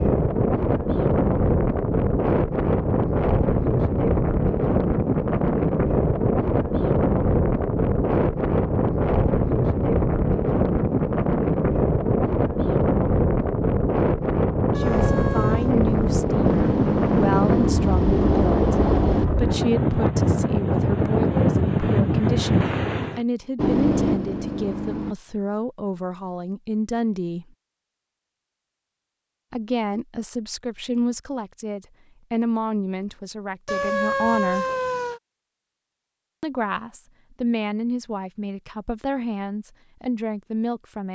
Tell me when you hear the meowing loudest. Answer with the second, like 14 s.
34 s.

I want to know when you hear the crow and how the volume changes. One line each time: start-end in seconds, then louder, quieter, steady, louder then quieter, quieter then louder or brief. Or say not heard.
not heard.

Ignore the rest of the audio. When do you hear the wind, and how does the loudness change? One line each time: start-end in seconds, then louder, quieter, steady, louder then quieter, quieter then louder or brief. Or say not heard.
0.0-23.2 steady.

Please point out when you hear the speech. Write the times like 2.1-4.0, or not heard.
14.8-18.6, 19.4-27.4, 29.5-34.7, 36.4-41.1.